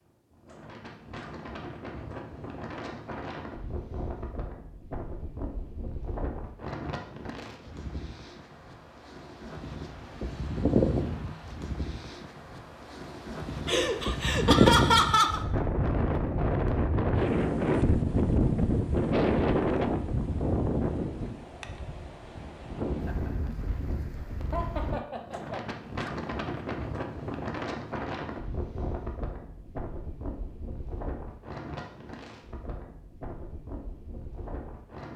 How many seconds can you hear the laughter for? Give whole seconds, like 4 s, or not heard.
3 s.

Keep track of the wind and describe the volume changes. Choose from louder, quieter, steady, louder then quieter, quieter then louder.
louder then quieter.